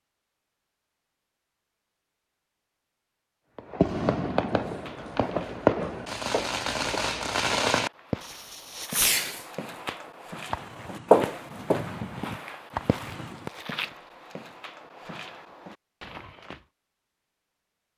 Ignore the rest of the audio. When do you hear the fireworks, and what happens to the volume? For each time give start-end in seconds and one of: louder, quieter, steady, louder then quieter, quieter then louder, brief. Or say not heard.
3.5-13.5 quieter.